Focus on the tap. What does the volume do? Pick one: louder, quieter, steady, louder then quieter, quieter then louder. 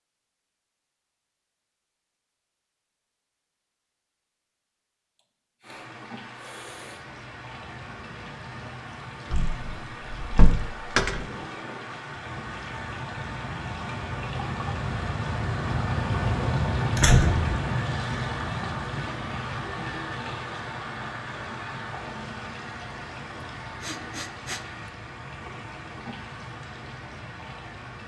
louder then quieter.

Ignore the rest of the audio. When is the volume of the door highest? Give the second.
17 s.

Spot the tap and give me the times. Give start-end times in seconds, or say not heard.
5.6-28.0.